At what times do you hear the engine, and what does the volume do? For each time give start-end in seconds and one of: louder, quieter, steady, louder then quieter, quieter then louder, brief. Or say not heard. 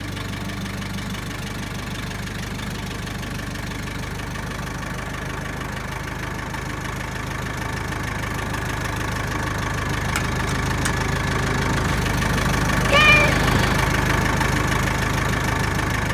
0.0-16.0 louder.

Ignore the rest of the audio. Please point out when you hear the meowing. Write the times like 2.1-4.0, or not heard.
12.9-13.8.